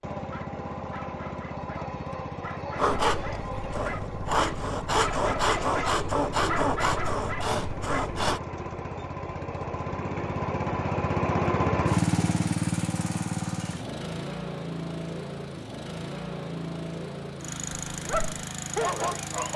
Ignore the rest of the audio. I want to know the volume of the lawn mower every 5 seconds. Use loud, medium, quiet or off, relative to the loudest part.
medium, medium, loud, medium.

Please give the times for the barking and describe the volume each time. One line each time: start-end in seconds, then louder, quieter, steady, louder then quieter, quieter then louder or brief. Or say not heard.
0.3-8.1 louder
17.9-19.5 brief.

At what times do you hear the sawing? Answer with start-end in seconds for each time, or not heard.
2.8-8.4.